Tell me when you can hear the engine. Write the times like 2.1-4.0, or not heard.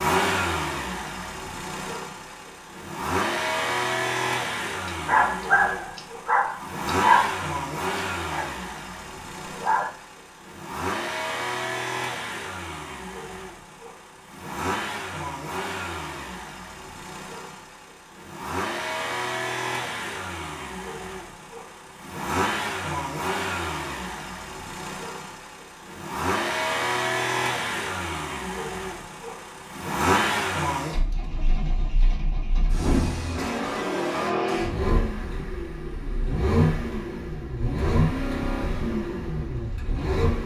0.0-40.4.